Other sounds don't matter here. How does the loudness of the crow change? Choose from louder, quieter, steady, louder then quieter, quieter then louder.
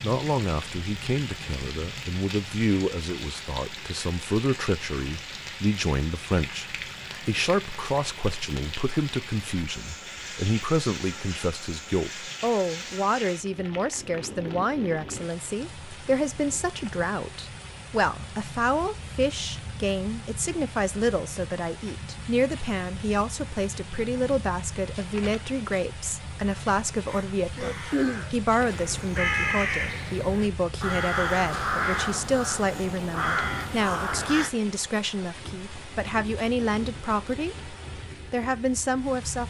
steady.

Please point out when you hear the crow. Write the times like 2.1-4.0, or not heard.
27.1-34.5.